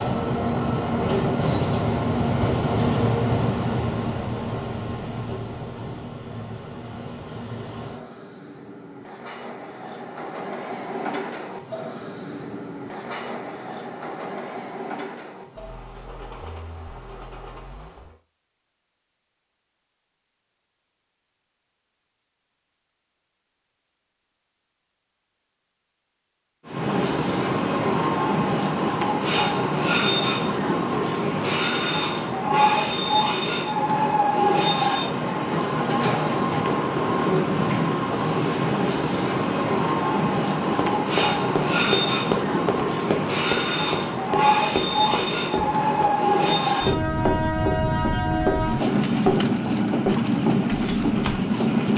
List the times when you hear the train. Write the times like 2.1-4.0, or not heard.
0.0-18.1, 26.6-51.9.